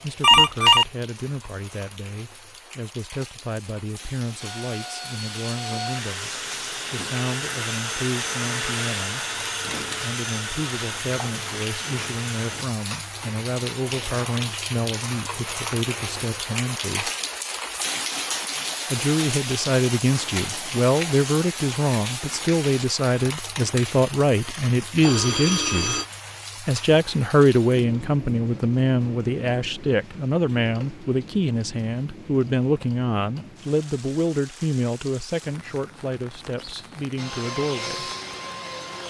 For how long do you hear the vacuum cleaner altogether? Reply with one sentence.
You can hear the vacuum cleaner for 10 seconds altogether.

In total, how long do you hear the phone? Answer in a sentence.
You can hear the phone for 2 seconds altogether.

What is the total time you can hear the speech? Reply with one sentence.
You can hear the speech for 35 seconds altogether.